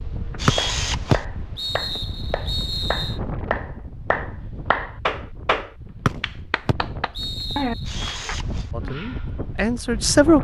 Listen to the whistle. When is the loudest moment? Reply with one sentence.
The loudest moment of the whistle is at 1 second.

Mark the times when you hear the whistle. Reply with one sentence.
You can hear the whistle from 0.5 to 3.1 s and from 6.0 to 7.9 s.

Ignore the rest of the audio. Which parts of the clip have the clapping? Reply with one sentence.
The clapping can be heard from 0.6 to 8.3 s.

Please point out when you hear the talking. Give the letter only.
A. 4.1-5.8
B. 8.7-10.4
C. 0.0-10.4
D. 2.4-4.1
B.